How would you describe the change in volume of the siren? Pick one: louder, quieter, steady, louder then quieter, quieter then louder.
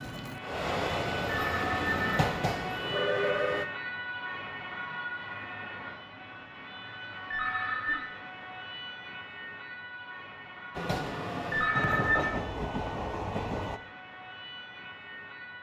quieter.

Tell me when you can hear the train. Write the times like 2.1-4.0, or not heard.
0.0-3.6, 10.8-13.8.